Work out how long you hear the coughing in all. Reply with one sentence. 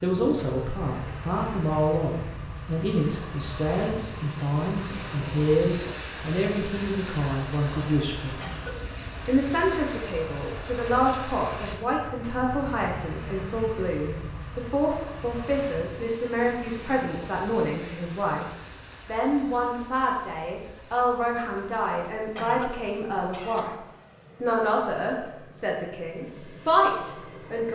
You can hear the coughing for 2 seconds altogether.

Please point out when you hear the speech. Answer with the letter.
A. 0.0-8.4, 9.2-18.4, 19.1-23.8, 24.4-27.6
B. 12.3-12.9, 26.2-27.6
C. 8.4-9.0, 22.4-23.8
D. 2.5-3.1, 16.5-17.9
A.